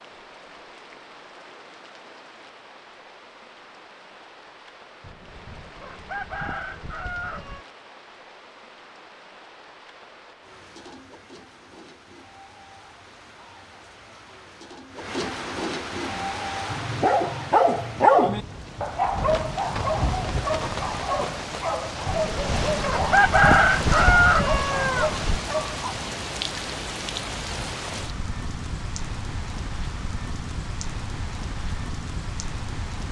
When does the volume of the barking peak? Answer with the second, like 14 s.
18 s.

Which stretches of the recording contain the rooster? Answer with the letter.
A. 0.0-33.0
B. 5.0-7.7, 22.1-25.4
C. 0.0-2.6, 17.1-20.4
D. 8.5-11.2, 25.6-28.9
B.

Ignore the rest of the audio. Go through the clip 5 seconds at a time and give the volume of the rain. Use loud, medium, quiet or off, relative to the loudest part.
quiet, quiet, quiet, loud, loud, loud, medium.